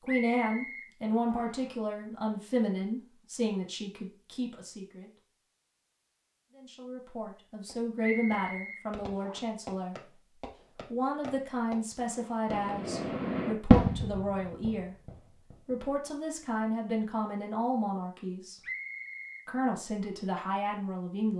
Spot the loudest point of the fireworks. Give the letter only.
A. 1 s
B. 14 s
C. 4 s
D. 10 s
B.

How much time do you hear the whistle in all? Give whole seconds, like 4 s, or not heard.
4 s.